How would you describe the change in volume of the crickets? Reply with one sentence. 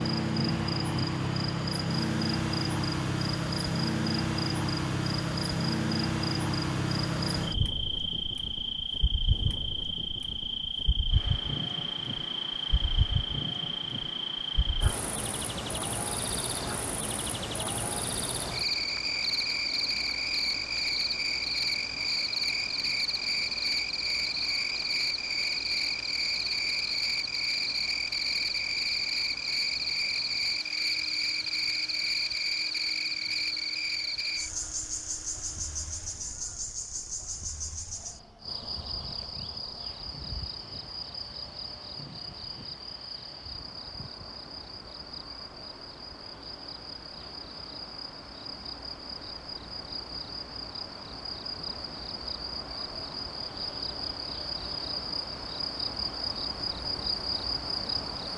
The volume of the crickets goes down.